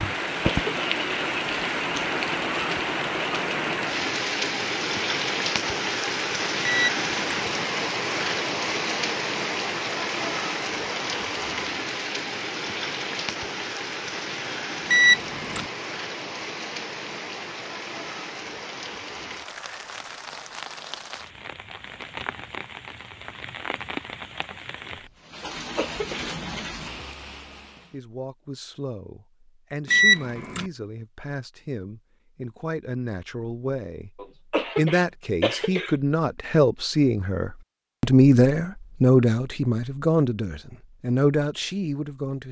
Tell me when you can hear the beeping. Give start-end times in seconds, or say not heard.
6.6-7.4, 14.9-15.7, 29.9-30.6.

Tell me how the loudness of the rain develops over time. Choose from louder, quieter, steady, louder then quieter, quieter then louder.
quieter.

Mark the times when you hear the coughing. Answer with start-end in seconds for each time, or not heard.
0.1-0.7, 25.4-26.3, 34.1-36.0.